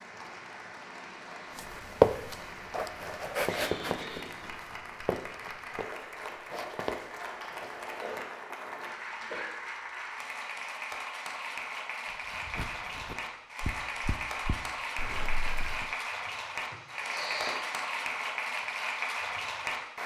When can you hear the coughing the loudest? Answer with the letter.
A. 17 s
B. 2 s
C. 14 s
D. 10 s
A.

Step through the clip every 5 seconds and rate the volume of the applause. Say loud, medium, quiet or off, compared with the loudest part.
medium, medium, loud, loud.